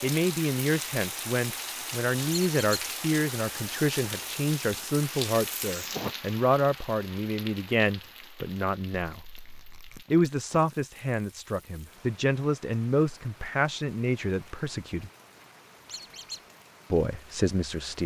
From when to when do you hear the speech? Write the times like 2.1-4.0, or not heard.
0.0-9.2, 10.1-15.1, 16.9-18.0.